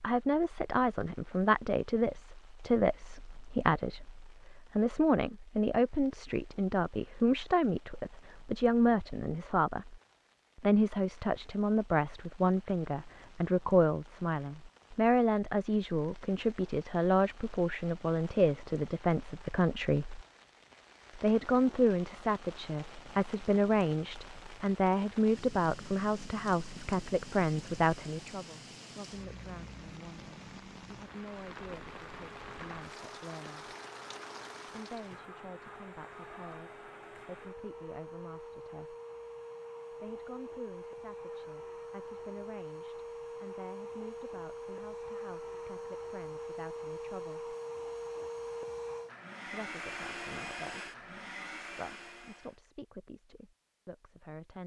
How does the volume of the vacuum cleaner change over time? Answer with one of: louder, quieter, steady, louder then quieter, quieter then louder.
louder.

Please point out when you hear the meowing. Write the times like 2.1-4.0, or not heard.
not heard.